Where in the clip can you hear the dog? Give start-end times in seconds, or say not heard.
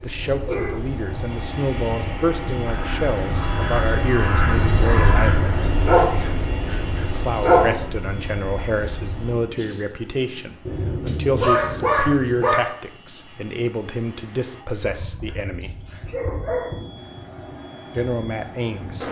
0.0-1.4, 5.8-7.7, 10.7-12.6, 14.7-16.7.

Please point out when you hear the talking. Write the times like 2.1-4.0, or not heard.
0.0-5.3, 7.0-15.8, 17.9-19.0.